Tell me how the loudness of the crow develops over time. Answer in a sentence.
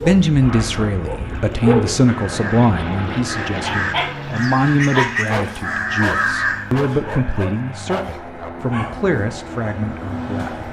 The loudness of the crow goes up.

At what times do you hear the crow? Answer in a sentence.
The crow can be heard from 2.0 to 6.9 s.